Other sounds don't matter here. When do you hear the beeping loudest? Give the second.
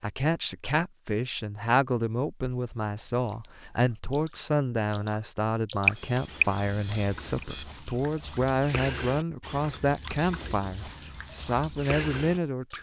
6 s.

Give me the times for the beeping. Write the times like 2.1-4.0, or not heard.
5.8-7.7.